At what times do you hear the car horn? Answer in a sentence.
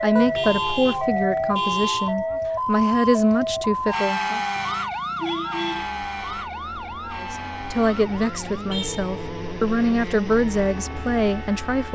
The car horn can be heard from 0.1 to 2.1 s, from 4.5 to 6.0 s and from 8.7 to 9.2 s.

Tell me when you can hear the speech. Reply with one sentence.
The speech can be heard from 0.0 to 4.4 s and from 7.2 to 11.9 s.